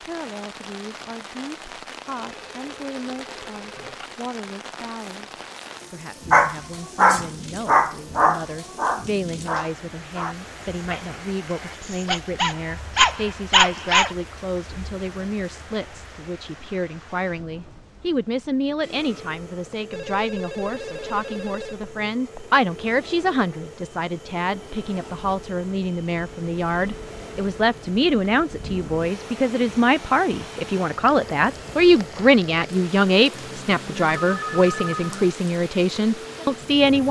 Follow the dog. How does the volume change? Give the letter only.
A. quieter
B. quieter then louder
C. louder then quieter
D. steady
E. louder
B.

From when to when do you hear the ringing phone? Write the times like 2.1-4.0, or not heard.
2.1-4.2, 19.9-22.6, 33.4-35.4.